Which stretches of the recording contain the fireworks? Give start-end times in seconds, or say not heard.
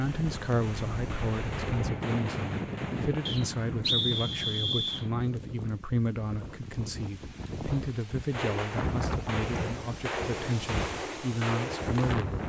0.0-5.2, 8.3-12.2.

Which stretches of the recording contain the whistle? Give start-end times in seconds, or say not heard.
3.2-5.0.